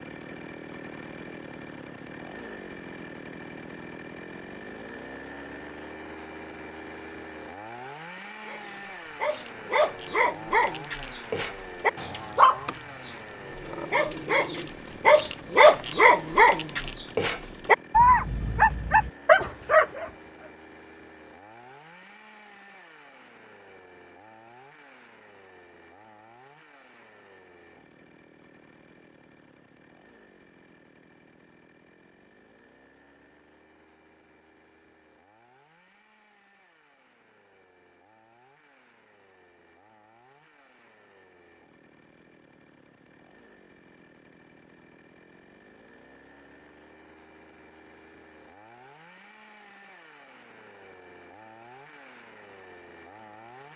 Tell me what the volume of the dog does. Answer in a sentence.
The loudness of the dog goes up.